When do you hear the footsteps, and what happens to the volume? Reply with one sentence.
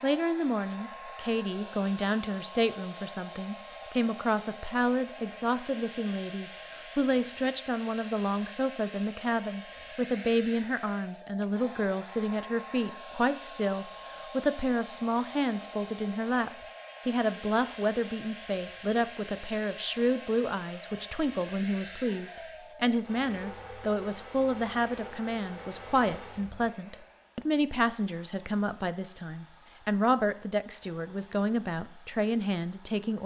The footsteps can't be heard in this clip.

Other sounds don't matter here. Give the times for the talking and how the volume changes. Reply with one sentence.
The talking can be heard from 0.0 to 33.2 s, at a steady volume.